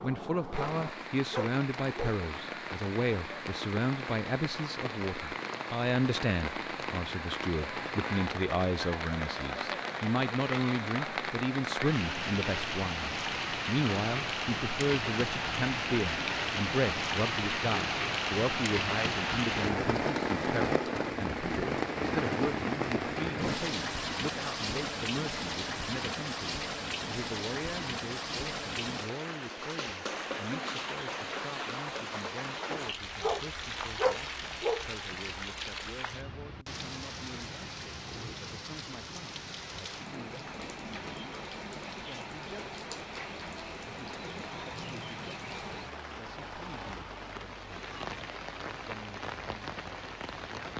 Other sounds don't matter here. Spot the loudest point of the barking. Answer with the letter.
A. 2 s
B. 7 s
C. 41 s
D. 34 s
D.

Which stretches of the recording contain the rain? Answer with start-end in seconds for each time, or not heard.
0.0-50.7.